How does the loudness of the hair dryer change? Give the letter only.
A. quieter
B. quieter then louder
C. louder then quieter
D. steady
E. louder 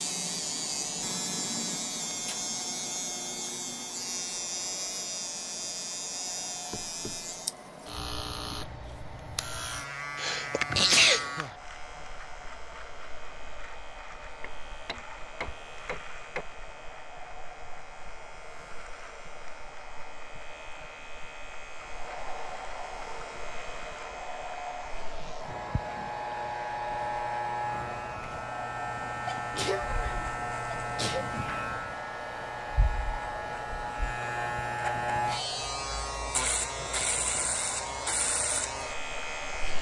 E.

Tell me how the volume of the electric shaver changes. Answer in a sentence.
The loudness of the electric shaver goes down, then up.